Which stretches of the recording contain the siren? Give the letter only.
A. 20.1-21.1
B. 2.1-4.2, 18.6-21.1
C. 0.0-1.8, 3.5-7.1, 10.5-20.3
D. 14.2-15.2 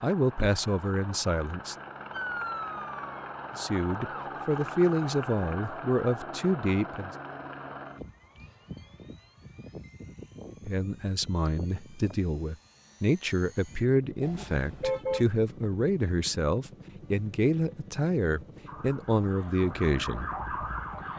B.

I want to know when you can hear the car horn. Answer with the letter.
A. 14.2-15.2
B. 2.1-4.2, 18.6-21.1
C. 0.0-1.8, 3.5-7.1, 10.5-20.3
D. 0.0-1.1
A.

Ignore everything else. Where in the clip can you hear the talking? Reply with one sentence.
You can hear the talking from 0.0 to 1.8 s, from 3.5 to 7.1 s and from 10.5 to 20.3 s.